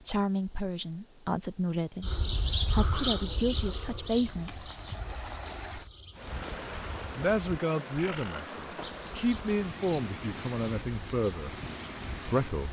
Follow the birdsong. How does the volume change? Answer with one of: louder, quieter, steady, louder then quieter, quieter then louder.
quieter.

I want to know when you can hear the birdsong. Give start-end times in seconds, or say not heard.
2.0-12.6.